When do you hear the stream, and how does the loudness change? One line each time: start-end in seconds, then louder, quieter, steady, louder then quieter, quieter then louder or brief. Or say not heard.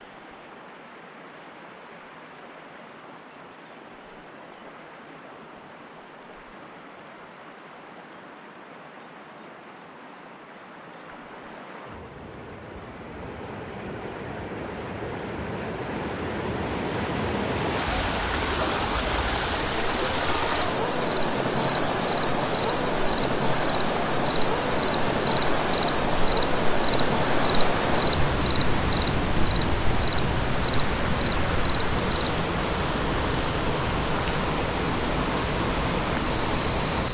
0.0-37.0 louder.